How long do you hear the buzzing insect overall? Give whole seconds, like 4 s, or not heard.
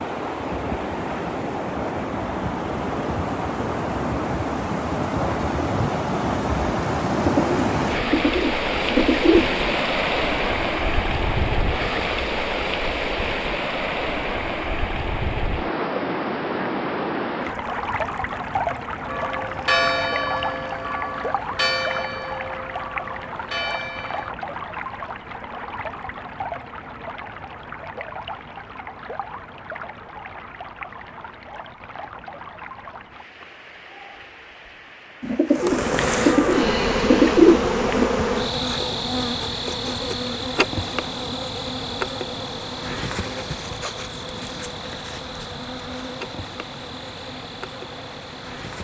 13 s.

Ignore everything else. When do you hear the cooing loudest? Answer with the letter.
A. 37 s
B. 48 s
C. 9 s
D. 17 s
A.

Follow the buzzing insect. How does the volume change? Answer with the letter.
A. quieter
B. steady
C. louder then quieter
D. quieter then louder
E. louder
A.